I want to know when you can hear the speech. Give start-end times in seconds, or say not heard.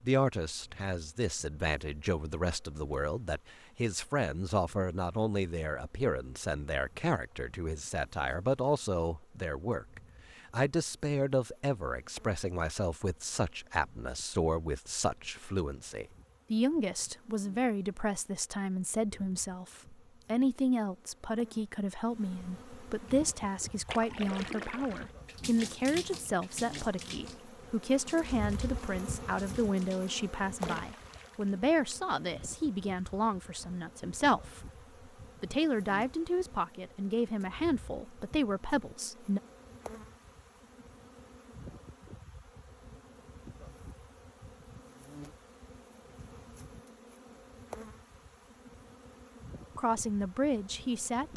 0.0-34.6, 35.4-39.4, 49.8-51.3.